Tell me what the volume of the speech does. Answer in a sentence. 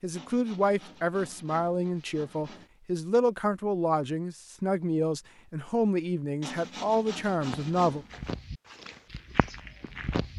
The loudness of the speech stays about the same.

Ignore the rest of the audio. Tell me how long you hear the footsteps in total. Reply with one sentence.
You can hear the footsteps for 3 seconds altogether.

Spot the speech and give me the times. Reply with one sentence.
The speech can be heard from 0.0 to 8.1 s.